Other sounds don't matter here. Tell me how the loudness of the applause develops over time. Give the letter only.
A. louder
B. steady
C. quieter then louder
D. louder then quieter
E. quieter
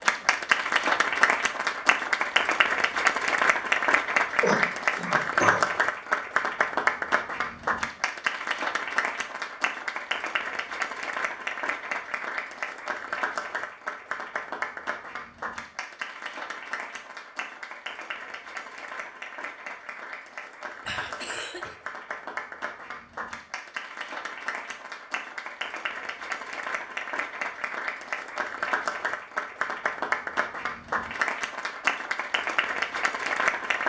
C.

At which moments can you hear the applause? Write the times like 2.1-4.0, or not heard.
0.0-33.8.